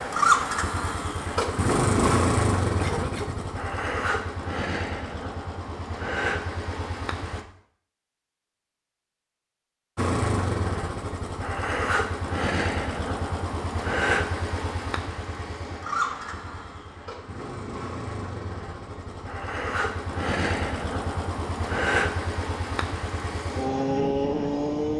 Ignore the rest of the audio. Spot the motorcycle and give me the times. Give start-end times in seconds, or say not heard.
0.0-7.5, 9.9-24.9.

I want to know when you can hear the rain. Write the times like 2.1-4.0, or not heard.
not heard.